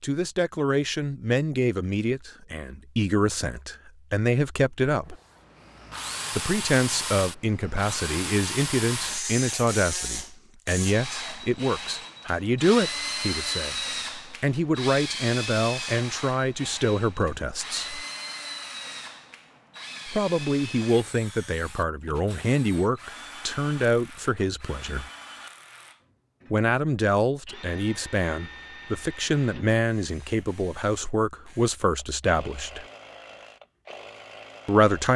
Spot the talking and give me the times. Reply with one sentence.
The talking can be heard from 0.0 to 5.2 s, from 6.3 to 18.1 s, from 20.1 to 25.1 s, from 26.5 to 32.9 s and from 34.6 to 35.1 s.